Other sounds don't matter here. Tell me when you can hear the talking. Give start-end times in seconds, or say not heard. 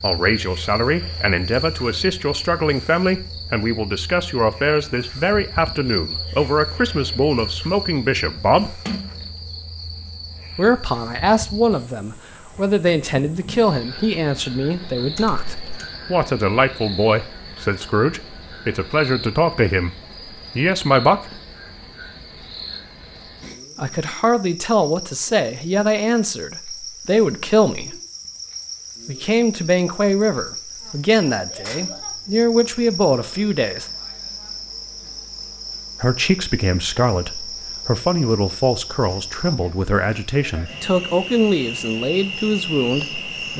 0.0-8.8, 10.6-19.9, 20.6-21.3, 23.8-27.9, 29.1-33.9, 36.0-43.5.